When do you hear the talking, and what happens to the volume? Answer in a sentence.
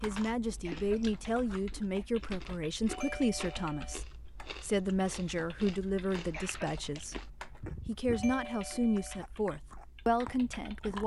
The talking can be heard from 0.0 to 11.0 s, at a steady volume.